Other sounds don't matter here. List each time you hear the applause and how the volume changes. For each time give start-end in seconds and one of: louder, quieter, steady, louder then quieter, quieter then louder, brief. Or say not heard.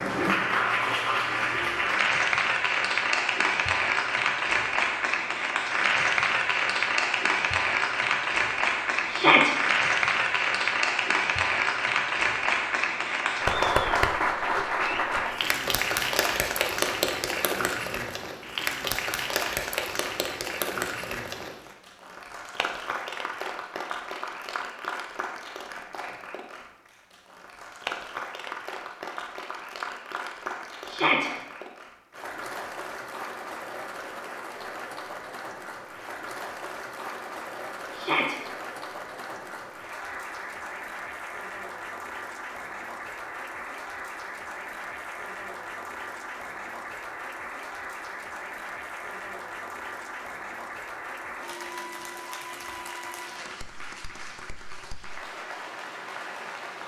0.0-56.8 quieter.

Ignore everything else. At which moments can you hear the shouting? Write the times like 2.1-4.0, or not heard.
9.1-9.6, 30.9-31.3, 37.9-38.4.